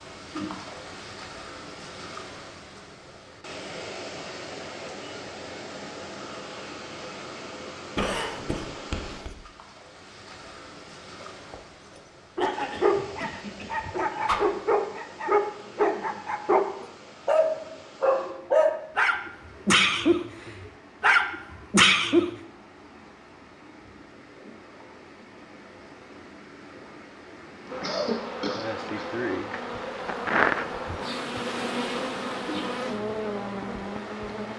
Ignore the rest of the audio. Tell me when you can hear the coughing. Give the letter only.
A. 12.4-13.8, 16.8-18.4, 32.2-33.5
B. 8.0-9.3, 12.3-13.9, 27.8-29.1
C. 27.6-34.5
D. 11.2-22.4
B.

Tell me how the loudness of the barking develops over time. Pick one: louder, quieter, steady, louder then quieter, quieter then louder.
louder.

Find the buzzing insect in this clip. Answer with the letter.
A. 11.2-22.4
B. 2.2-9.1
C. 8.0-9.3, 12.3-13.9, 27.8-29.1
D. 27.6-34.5
D.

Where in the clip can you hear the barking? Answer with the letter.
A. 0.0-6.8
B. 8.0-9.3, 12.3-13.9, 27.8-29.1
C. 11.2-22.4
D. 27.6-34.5
C.